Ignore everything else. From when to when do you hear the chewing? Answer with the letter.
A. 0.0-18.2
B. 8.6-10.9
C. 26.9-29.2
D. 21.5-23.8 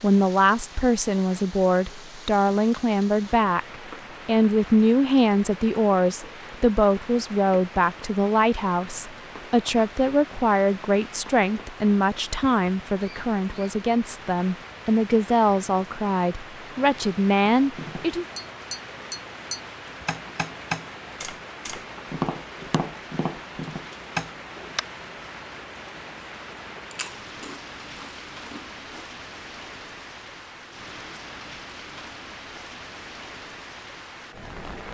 C.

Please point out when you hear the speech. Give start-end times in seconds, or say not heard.
0.0-18.2.